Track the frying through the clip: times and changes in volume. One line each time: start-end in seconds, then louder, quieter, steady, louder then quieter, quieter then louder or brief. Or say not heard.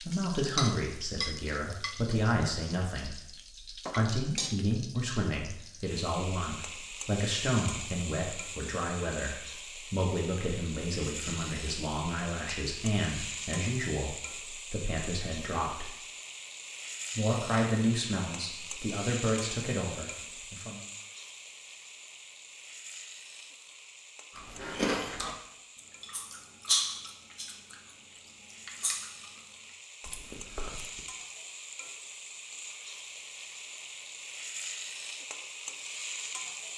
0.0-36.7 quieter then louder.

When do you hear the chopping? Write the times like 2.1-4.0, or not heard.
not heard.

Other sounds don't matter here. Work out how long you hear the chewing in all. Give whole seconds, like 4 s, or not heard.
6 s.